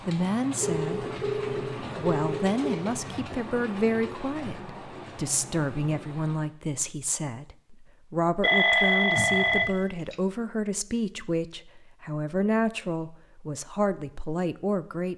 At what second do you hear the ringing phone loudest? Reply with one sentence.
The loudest moment of the ringing phone is at 9 seconds.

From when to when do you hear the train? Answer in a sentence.
The train can be heard from 0.0 to 6.5 s.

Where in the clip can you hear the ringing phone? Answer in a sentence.
You can hear the ringing phone from 0.6 to 2.6 s and from 8.4 to 10.2 s.